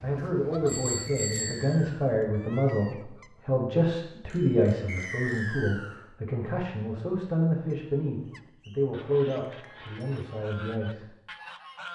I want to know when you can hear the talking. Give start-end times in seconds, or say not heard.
0.0-11.2.